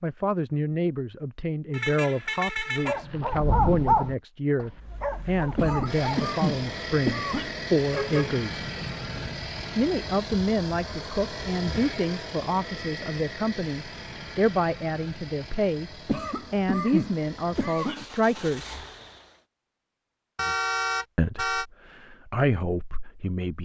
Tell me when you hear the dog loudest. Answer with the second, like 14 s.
4 s.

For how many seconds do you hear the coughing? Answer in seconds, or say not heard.
4 s.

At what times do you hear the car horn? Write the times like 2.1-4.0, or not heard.
1.7-3.0, 7.9-9.3, 20.4-21.6.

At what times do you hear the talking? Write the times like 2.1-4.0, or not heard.
0.0-8.6, 9.8-15.9, 16.5-18.8, 21.1-23.6.